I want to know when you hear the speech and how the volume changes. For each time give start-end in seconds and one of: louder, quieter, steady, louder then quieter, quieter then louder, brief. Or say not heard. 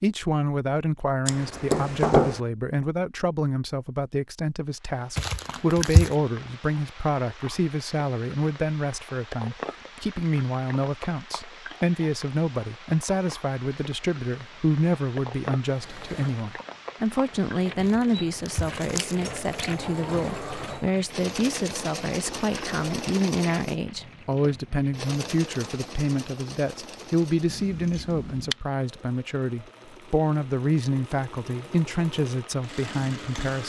0.0-33.6 steady.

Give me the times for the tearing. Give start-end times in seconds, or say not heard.
5.2-6.2, 17.8-19.8.